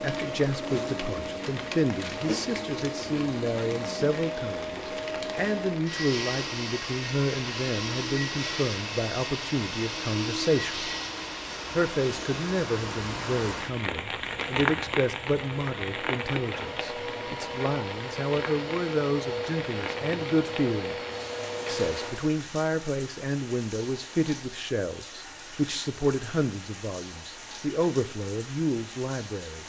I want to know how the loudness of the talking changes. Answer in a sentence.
The volume of the talking stays about the same.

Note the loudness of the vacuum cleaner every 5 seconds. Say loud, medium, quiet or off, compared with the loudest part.
loud, loud, loud, loud, loud, off.